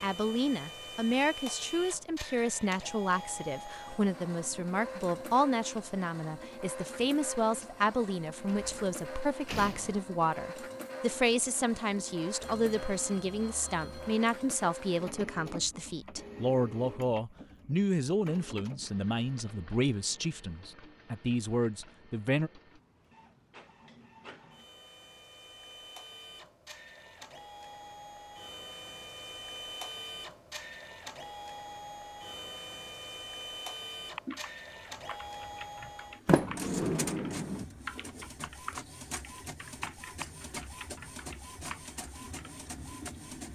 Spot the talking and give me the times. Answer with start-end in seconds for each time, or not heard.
0.0-22.5.